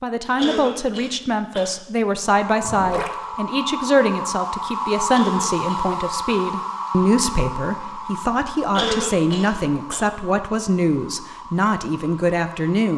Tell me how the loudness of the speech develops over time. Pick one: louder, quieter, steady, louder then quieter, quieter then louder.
steady.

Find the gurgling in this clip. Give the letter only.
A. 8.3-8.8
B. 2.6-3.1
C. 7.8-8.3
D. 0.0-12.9
B.